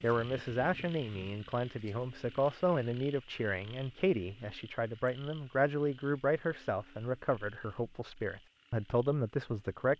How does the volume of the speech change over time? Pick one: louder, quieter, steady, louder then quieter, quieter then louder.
steady.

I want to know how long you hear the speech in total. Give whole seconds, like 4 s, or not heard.
10 s.